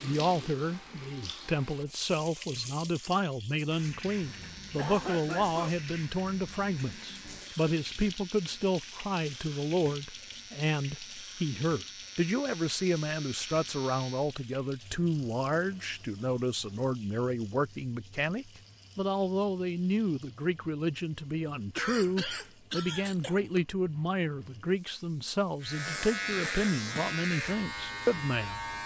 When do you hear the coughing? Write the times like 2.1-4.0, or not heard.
4.2-5.8, 21.8-23.6.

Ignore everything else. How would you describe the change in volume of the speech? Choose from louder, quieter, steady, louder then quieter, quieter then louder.
steady.